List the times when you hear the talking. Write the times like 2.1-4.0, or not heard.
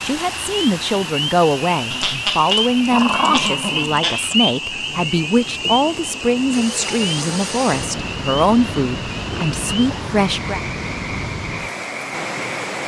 0.0-10.6.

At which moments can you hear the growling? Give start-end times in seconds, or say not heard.
1.9-4.4, 9.3-10.2.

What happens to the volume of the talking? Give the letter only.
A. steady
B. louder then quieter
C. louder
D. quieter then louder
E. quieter
A.